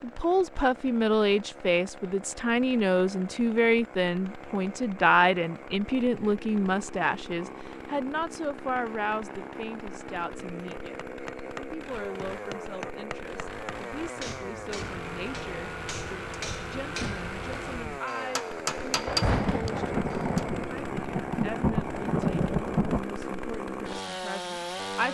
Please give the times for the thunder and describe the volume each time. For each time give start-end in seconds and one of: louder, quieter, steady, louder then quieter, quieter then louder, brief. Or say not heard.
18.8-23.1 quieter then louder.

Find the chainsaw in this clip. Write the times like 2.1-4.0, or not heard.
0.0-25.0.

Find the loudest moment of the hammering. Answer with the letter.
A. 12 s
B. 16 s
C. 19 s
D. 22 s
C.